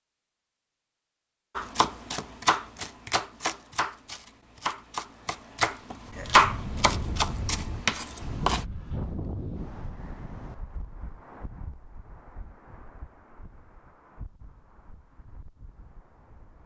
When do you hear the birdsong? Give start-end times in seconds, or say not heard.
not heard.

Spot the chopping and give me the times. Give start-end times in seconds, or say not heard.
1.6-8.7.